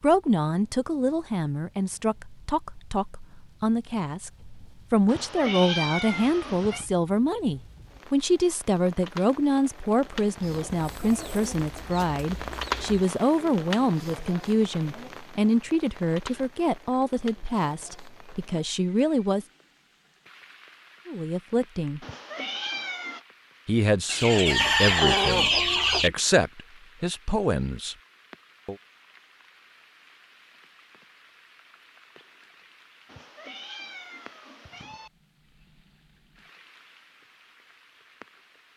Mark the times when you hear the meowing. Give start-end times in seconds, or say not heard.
5.0-6.8, 22.0-23.2, 33.0-35.1.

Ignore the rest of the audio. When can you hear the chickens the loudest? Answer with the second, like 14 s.
25 s.